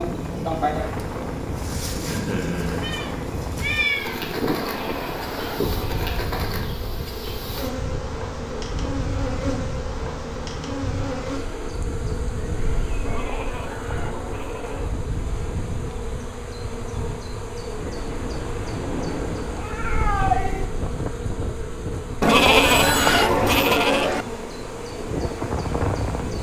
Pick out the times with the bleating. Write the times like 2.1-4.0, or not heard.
4.5-6.2, 13.1-15.0, 22.2-24.2.